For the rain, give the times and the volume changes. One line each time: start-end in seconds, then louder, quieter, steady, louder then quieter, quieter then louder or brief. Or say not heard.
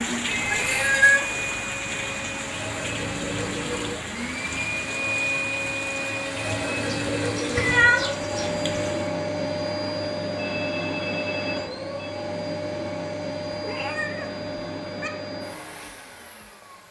0.0-9.2 quieter.